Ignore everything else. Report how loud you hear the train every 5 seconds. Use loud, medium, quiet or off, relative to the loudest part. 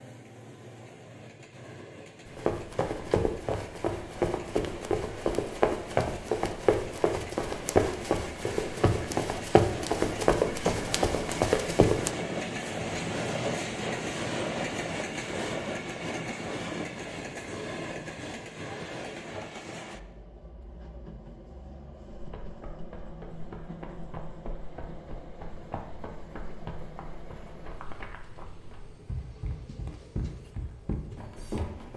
quiet, medium, loud, loud, quiet, quiet, quiet.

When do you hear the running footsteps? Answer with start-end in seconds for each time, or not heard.
2.2-12.1, 22.1-31.9.